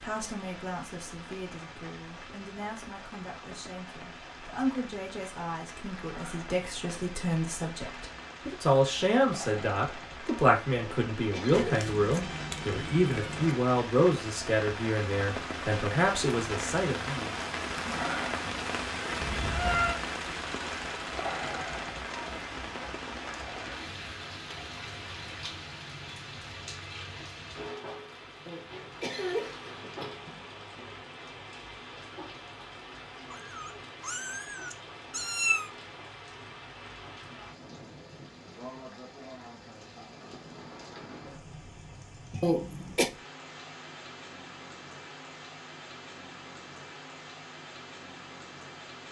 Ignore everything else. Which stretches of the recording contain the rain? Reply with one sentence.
You can hear the rain from 0.0 to 49.0 s.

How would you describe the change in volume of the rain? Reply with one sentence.
The loudness of the rain goes up, then down.